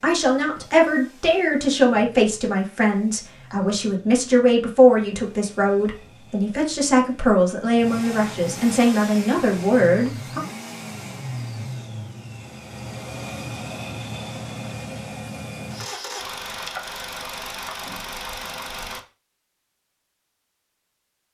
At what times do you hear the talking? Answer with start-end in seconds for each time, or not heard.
0.0-10.4.